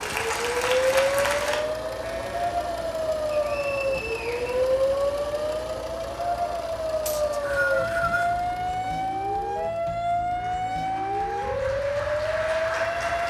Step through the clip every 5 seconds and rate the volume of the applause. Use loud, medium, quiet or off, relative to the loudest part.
loud, off, medium.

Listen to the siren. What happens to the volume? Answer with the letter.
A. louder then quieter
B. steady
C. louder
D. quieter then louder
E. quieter
B.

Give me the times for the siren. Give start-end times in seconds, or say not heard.
0.0-13.2.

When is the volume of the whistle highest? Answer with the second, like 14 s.
8 s.